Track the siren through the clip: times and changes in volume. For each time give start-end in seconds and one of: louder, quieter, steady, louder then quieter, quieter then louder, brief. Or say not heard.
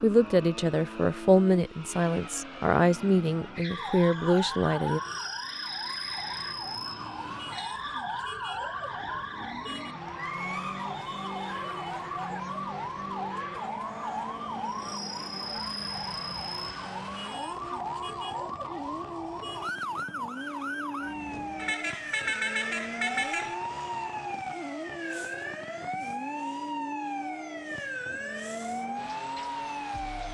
3.7-30.2 steady.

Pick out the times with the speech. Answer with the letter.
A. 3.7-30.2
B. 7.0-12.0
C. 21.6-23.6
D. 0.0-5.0
D.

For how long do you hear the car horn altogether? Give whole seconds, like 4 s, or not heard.
2 s.